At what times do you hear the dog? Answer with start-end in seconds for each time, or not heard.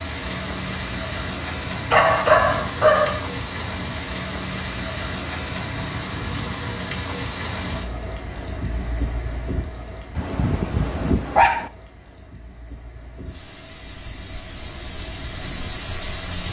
1.9-3.2, 10.2-11.7.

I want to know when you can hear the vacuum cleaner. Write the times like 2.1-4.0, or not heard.
not heard.